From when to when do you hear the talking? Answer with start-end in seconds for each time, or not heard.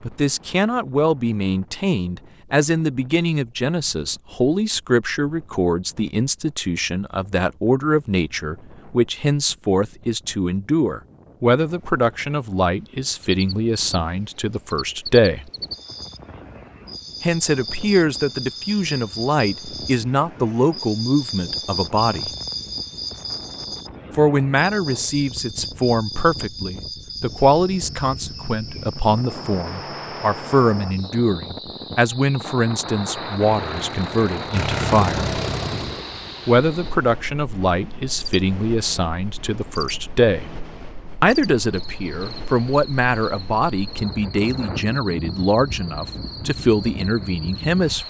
0.0-15.5, 17.2-22.3, 24.1-35.3, 36.5-40.5, 41.2-48.0.